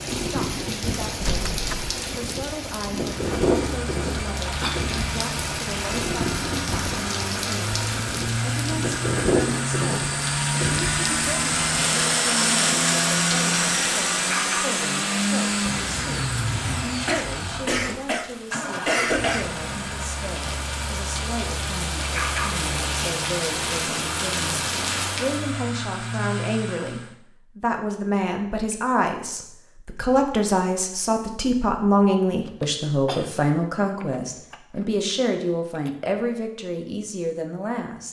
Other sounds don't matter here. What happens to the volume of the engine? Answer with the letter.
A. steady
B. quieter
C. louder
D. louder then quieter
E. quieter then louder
D.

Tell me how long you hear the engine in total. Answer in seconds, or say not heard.
24 s.